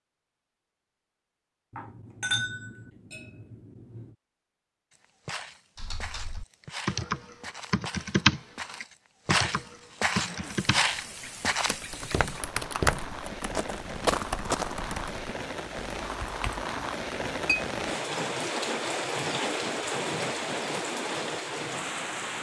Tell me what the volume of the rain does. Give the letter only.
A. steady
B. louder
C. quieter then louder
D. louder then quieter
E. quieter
B.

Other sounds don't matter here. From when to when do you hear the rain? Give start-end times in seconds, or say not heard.
10.2-22.3.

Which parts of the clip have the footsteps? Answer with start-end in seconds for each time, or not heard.
5.2-14.9.